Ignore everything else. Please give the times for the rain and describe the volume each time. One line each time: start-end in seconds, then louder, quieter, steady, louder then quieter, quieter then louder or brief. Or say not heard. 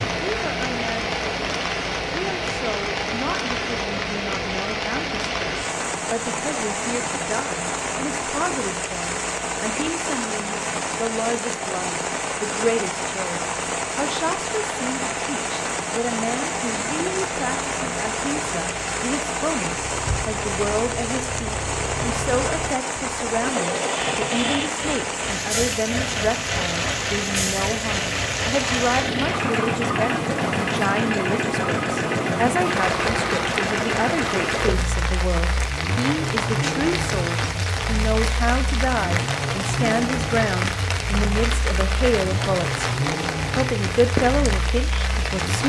0.0-45.6 steady.